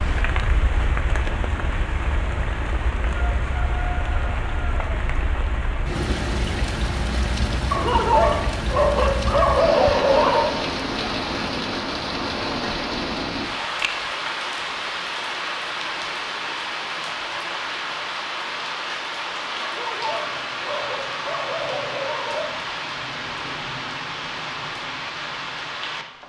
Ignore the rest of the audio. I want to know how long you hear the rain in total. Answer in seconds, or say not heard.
26 s.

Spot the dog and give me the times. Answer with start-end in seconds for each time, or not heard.
7.7-10.5, 19.6-22.6.